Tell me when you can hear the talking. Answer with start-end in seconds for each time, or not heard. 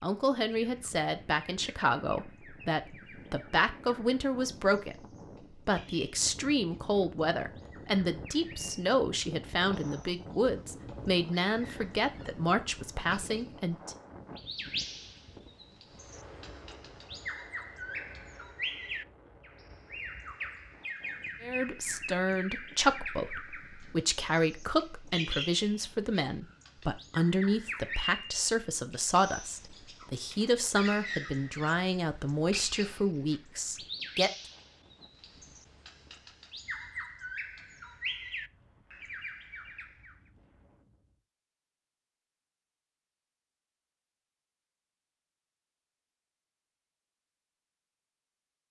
0.0-5.0, 5.5-13.9, 21.4-34.3.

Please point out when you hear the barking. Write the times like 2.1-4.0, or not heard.
not heard.